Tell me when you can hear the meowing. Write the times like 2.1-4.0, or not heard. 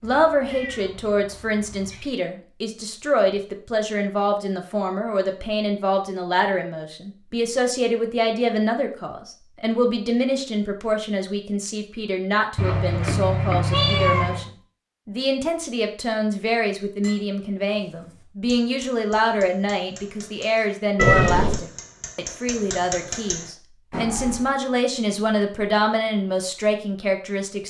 0.0-2.1, 12.6-14.5, 20.9-21.6.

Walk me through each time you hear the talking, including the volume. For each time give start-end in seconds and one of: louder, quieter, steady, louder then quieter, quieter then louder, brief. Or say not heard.
0.0-27.6 steady.